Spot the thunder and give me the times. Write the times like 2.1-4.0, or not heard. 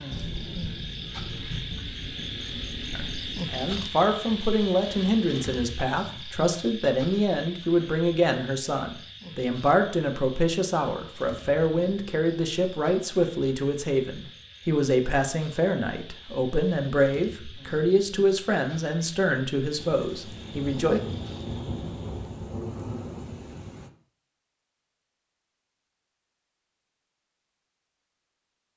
0.1-3.9, 19.8-23.9.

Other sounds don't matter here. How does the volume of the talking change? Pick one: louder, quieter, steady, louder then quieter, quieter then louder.
steady.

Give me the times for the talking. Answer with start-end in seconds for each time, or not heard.
3.0-21.0.